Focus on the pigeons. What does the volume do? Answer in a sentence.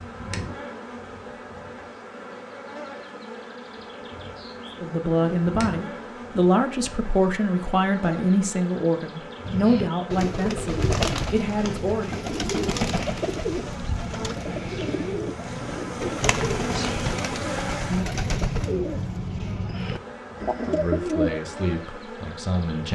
The volume of the pigeons stays about the same.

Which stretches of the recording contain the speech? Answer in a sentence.
The speech can be heard from 4.8 to 12.2 s and from 20.6 to 22.9 s.